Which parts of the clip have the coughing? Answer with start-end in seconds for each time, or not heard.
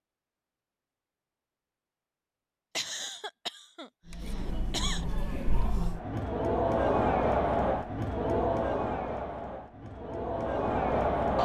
2.8-5.0.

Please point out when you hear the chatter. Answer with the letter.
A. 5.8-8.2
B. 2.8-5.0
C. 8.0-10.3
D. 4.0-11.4
D.